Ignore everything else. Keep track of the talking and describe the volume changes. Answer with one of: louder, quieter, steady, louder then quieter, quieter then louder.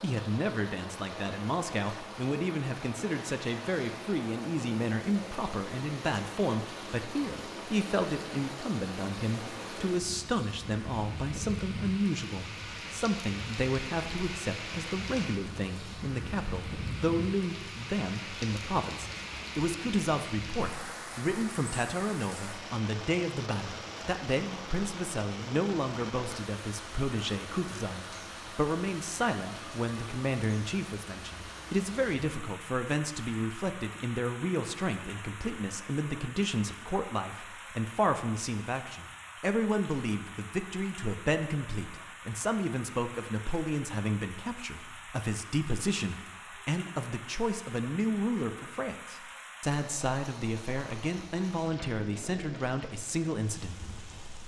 steady.